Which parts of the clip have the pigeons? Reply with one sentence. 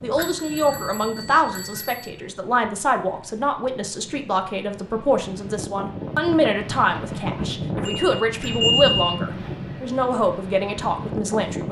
The pigeons can't be heard in this clip.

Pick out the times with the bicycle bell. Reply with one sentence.
You can hear the bicycle bell from 0.1 to 2.1 s and from 7.8 to 9.2 s.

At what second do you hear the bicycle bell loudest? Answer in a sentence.
The volume of the bicycle bell peaks at 9 seconds.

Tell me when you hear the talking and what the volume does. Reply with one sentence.
You can hear the talking from 0.0 to 11.6 s, at a steady volume.